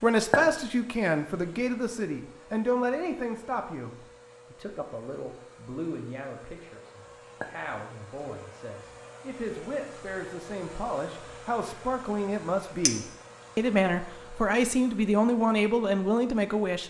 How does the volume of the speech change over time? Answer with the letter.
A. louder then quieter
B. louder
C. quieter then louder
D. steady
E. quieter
C.